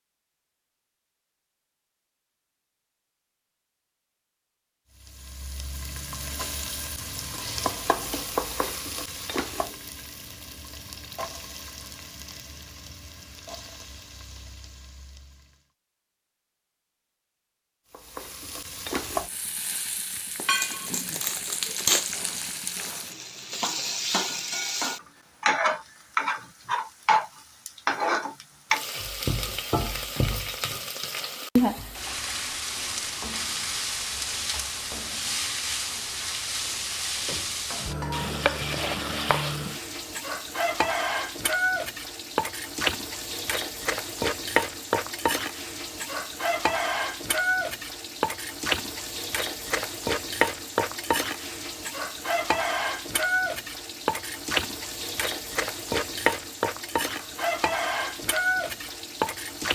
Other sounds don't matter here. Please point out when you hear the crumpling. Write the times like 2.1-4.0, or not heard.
20.4-22.1.